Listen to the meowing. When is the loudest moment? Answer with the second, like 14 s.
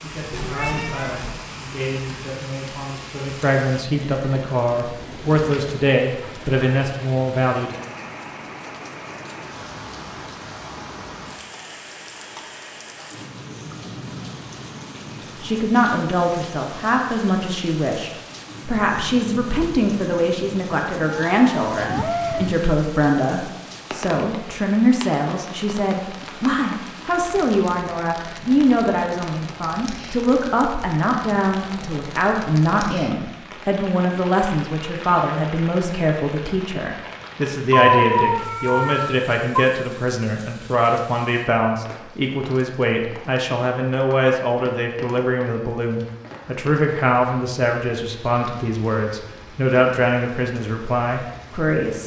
38 s.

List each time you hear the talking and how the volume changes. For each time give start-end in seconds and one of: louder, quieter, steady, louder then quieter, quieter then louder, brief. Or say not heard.
0.0-7.8 louder
15.4-52.0 steady.